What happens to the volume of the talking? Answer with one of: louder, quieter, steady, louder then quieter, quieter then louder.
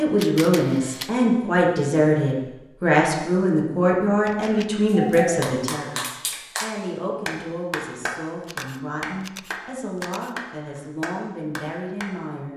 quieter.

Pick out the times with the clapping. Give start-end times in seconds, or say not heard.
4.9-12.1.